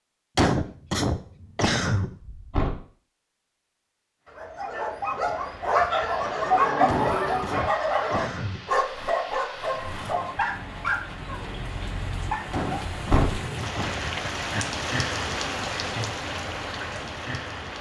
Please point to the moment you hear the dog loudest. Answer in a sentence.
The volume of the dog peaks at 7 seconds.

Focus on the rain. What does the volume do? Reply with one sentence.
The loudness of the rain goes up.